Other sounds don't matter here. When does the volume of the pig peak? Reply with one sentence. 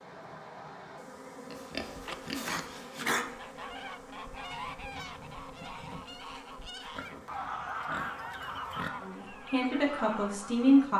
The volume of the pig peaks at 3 seconds.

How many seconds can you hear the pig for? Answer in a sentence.
You can hear the pig for 4 seconds altogether.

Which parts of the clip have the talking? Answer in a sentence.
The talking can be heard from 9.0 to 10.9 s.